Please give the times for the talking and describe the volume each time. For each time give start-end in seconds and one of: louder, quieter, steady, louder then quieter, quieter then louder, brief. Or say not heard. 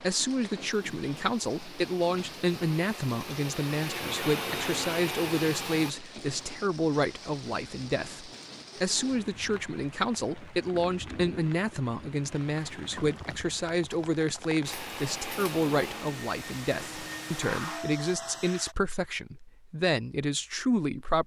0.0-21.2 steady.